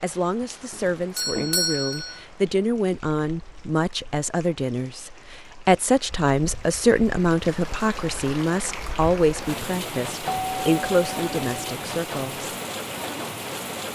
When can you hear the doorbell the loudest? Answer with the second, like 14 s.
2 s.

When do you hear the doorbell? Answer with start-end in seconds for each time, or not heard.
0.7-2.2, 10.2-11.8.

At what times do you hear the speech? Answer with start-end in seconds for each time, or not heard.
0.0-12.5.